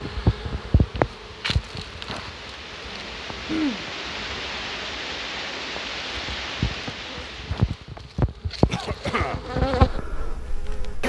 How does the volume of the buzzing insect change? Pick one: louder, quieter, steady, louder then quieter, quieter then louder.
quieter then louder.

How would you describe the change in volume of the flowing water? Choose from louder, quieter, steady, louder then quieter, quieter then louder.
louder.